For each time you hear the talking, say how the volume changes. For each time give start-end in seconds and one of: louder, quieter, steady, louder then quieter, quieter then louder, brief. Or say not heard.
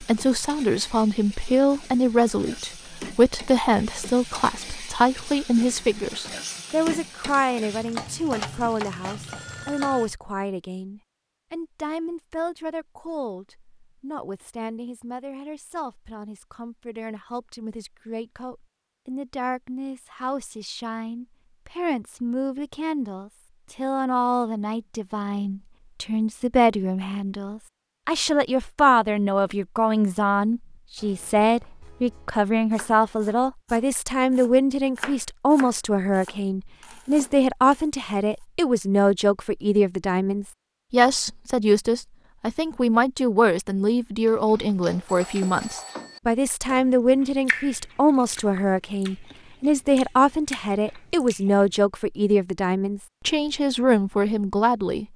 0.0-55.0 quieter then louder.